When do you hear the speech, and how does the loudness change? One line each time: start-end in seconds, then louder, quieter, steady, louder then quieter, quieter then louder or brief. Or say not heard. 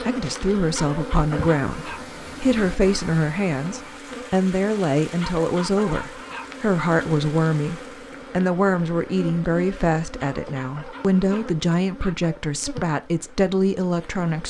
0.0-14.4 steady.